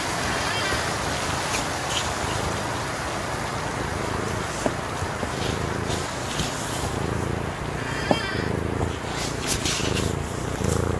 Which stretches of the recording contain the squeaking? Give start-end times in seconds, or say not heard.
0.1-0.9, 7.8-8.6.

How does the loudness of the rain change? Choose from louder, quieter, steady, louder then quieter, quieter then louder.
quieter.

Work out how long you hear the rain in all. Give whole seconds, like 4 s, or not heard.
11 s.